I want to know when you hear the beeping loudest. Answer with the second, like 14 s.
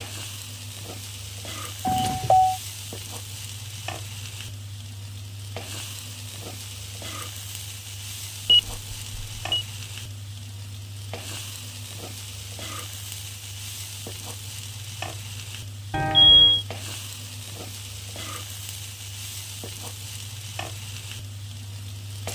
16 s.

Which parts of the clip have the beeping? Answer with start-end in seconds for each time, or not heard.
1.9-2.5, 8.4-9.6, 15.9-16.6.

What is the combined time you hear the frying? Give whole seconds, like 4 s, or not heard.
22 s.